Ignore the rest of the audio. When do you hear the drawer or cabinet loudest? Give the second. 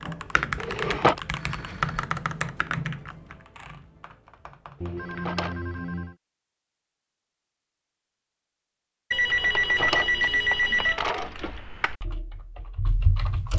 1 s.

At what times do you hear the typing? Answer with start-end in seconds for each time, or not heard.
0.0-5.8, 9.2-13.5.